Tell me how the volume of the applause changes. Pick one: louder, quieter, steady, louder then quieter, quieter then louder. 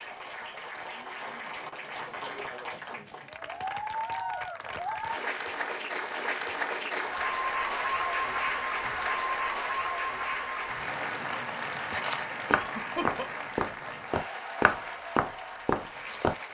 louder then quieter.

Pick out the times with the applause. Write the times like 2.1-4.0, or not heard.
0.0-16.4.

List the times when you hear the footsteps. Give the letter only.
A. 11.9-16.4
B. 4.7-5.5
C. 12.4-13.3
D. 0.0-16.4
A.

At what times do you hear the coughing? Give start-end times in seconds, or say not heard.
12.4-13.3.